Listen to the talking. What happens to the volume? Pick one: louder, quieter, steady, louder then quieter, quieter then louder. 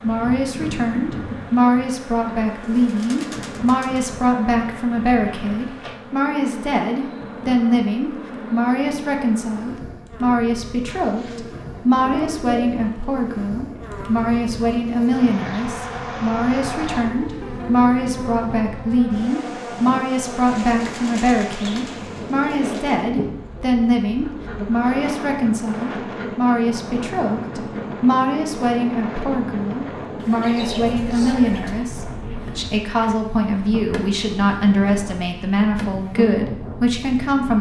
steady.